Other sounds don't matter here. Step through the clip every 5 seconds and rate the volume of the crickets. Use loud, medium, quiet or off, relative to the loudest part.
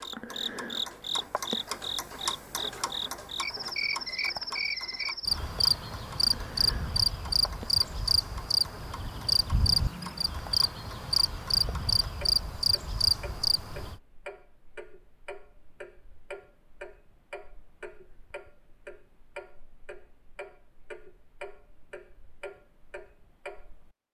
medium, loud, loud, off, off.